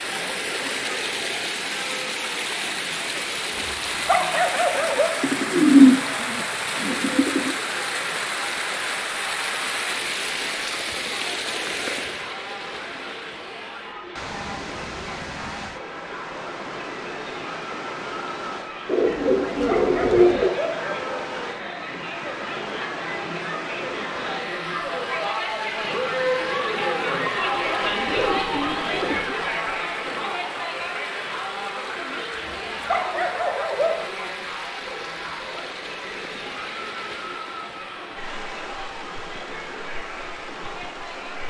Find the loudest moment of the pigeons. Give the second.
6 s.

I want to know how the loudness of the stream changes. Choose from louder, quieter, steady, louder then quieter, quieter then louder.
quieter.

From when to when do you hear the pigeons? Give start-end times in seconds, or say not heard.
5.2-7.5, 18.9-20.5, 27.8-29.4.